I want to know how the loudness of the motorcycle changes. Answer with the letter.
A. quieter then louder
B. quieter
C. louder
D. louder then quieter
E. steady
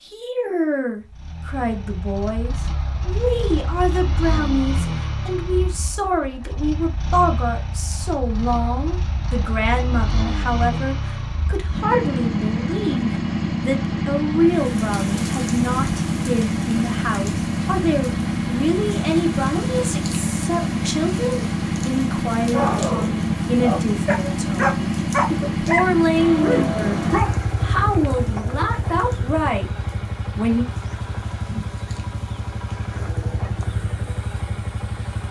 D.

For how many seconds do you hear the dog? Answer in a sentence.
The dog can be heard for 5 seconds in total.